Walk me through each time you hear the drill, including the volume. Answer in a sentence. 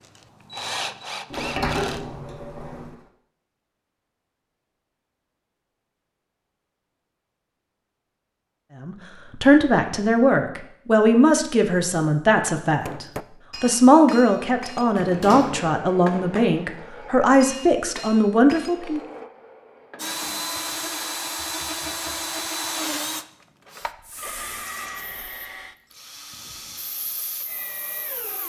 You can hear the drill briefly from 0.0 to 2.0 s; and from 19.9 to 28.4 s, getting quieter.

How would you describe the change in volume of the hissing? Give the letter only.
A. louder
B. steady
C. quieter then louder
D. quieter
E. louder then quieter
C.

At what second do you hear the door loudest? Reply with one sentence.
The volume of the door peaks at 2 seconds.